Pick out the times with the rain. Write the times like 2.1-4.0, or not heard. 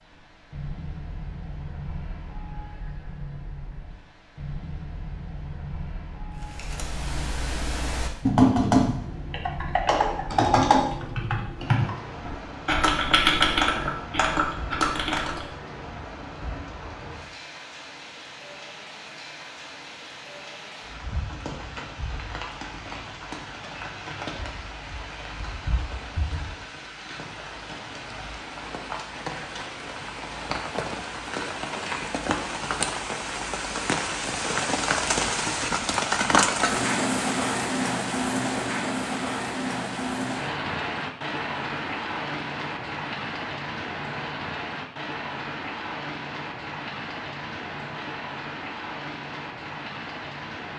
0.0-50.7.